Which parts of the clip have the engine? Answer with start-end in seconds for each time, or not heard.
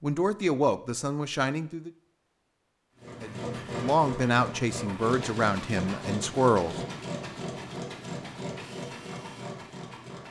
3.0-10.2.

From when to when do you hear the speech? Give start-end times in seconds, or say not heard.
0.0-1.9, 3.2-6.8.